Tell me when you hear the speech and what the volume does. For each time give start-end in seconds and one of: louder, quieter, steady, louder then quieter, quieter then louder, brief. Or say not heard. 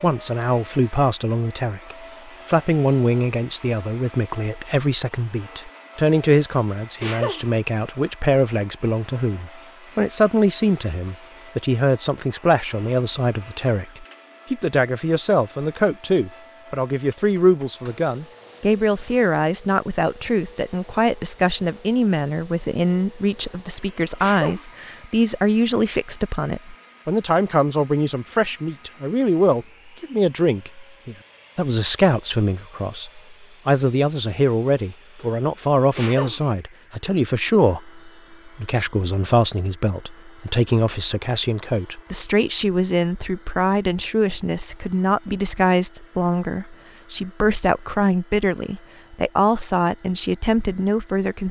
0.0-51.4 steady.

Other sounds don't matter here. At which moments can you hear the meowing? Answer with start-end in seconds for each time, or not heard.
not heard.